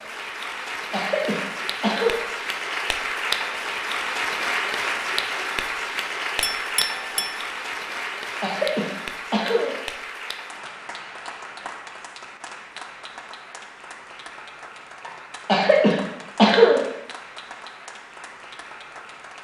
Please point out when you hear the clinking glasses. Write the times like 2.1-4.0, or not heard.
6.4-7.5.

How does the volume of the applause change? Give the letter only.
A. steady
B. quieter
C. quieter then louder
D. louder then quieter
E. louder
B.